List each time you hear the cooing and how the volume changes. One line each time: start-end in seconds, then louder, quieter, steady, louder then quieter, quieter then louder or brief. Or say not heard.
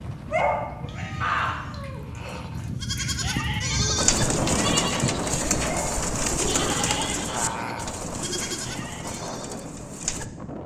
4.0-10.2 quieter.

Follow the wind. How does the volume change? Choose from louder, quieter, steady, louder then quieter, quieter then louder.
louder then quieter.